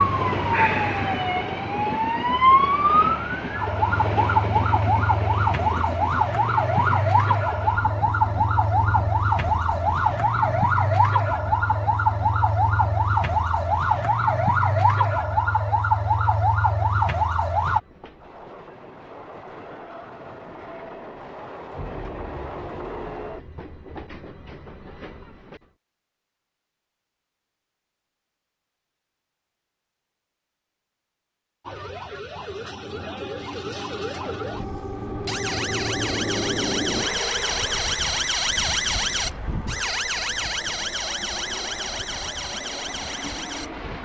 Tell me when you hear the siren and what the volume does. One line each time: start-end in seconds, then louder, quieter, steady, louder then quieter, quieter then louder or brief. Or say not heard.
0.0-17.8 steady
31.6-44.0 louder then quieter.